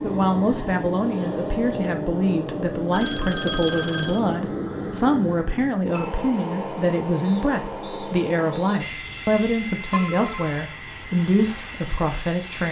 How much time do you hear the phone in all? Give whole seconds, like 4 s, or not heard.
2 s.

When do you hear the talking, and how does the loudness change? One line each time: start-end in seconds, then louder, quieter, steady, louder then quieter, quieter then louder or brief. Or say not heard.
0.0-12.6 steady.